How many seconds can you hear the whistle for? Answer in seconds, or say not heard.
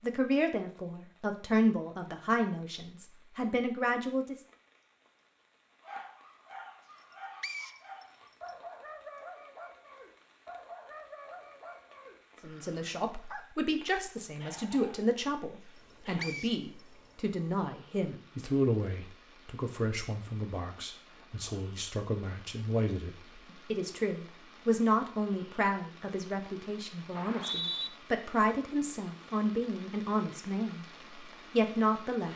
2 s.